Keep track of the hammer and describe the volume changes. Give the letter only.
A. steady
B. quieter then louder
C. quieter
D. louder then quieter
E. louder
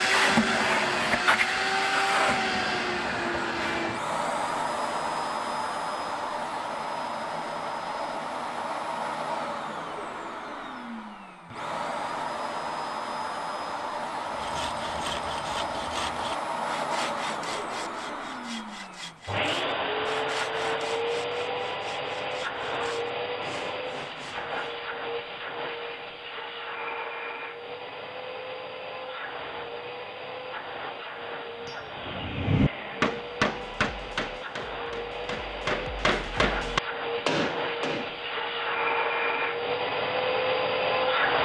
B.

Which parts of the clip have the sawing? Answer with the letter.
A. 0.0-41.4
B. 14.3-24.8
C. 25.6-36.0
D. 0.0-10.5
B.